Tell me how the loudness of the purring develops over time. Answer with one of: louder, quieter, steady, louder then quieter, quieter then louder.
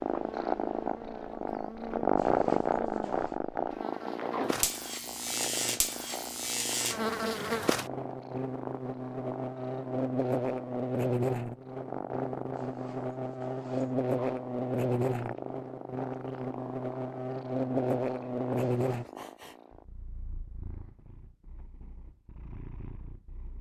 quieter.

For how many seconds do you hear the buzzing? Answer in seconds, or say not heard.
19 s.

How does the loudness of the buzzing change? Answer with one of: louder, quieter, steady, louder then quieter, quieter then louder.
louder.